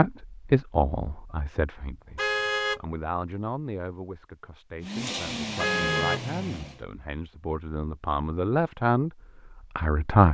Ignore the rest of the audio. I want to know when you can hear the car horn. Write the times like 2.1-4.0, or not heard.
2.1-2.8, 5.5-6.2.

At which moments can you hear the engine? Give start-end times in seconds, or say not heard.
4.8-6.8.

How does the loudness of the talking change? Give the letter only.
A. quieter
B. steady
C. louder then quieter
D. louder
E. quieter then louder
E.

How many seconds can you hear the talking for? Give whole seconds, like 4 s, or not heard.
10 s.